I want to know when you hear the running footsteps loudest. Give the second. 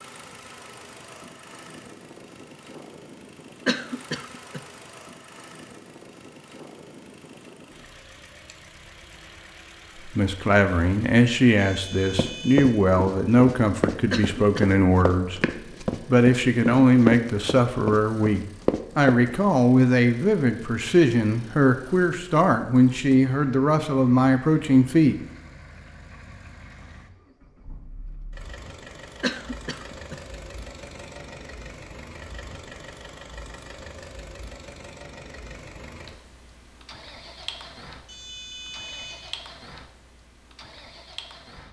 17 s.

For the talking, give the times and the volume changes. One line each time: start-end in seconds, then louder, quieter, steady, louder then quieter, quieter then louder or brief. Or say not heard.
10.1-15.4 steady
16.1-25.2 steady.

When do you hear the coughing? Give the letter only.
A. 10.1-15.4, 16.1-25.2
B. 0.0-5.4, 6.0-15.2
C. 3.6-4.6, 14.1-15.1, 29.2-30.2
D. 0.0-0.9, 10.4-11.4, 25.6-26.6
C.